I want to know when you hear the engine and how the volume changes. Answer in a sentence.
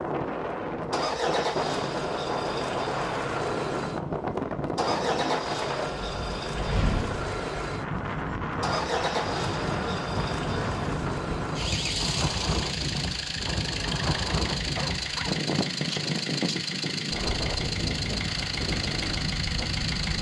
The engine can be heard from 0.0 to 20.1 s, at a steady volume.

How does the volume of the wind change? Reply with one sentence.
The loudness of the wind stays about the same.